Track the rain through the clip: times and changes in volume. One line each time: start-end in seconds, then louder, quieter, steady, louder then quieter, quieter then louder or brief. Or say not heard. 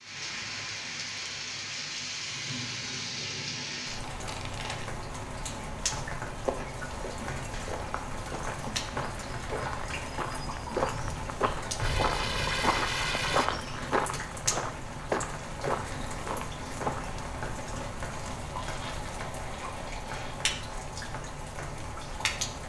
0.0-22.6 steady.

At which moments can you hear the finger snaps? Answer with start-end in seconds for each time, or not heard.
not heard.